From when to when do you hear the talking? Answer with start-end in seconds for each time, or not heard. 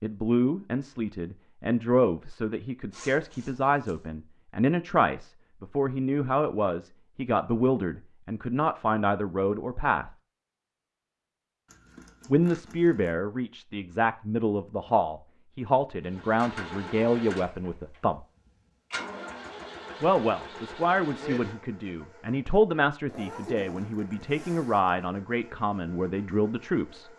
0.0-10.1, 12.2-18.2, 20.0-27.1.